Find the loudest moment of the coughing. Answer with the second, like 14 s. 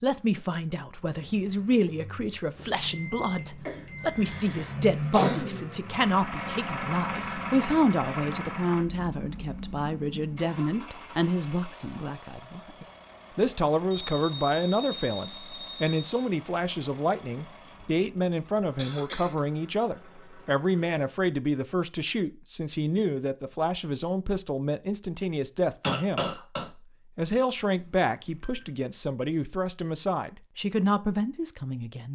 5 s.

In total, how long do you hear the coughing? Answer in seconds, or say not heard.
3 s.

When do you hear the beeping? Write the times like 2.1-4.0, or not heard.
2.5-4.5, 13.9-16.1, 27.8-28.7.